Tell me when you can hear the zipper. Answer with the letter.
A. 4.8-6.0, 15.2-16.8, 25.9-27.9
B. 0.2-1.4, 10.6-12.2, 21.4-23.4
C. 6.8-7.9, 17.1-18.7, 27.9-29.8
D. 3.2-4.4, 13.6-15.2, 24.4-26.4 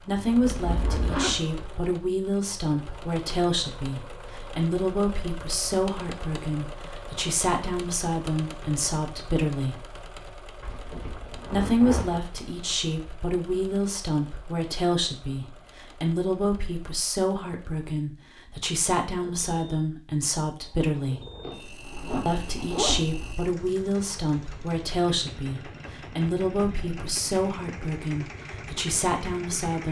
B.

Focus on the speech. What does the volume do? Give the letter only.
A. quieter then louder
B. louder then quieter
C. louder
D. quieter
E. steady
E.